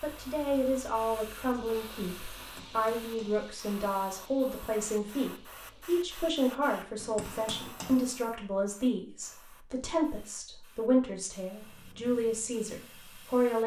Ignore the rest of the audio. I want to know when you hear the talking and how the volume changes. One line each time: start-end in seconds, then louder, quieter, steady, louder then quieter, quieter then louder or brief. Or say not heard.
0.0-13.6 steady.